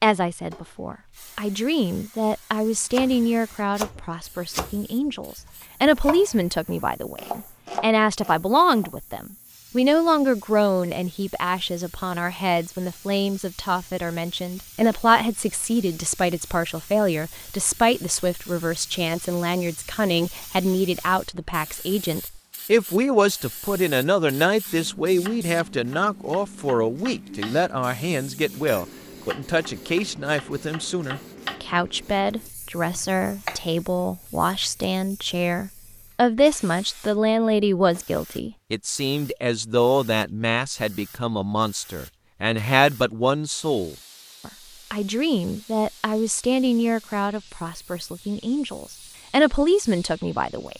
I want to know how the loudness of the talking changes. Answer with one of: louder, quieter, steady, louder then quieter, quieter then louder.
steady.